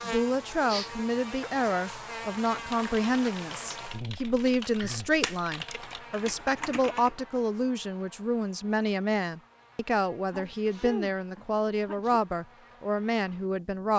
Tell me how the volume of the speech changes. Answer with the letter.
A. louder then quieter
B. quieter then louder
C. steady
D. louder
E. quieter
C.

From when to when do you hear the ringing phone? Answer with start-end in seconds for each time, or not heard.
not heard.